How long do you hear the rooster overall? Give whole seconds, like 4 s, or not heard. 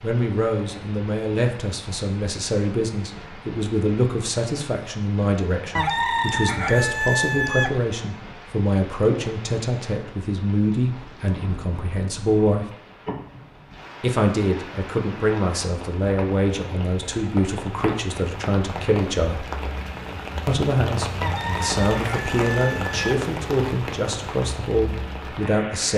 4 s.